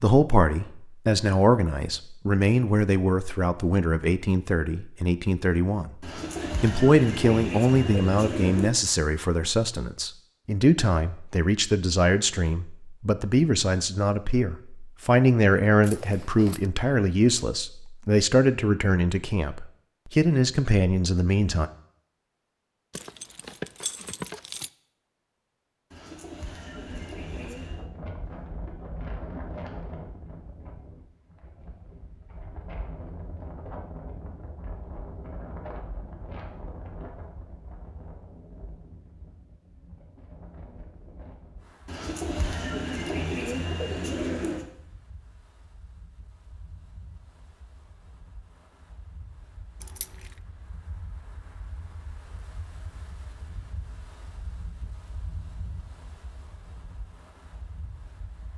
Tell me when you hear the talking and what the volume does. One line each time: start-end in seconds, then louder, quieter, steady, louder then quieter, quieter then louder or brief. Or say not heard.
0.0-21.7 steady.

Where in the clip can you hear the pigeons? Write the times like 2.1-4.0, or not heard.
6.0-8.8, 25.9-27.9, 41.9-44.6.